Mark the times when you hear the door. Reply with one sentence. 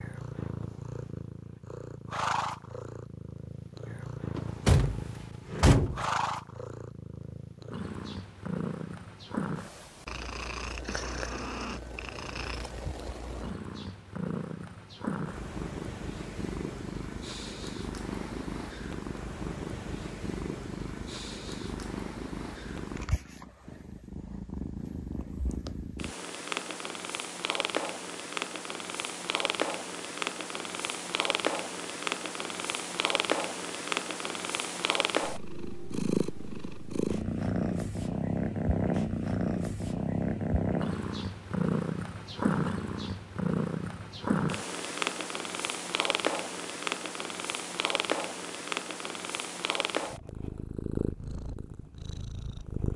You can hear the door from 4.3 to 6.0 s.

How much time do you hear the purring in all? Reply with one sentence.
The purring can be heard for 53 seconds in total.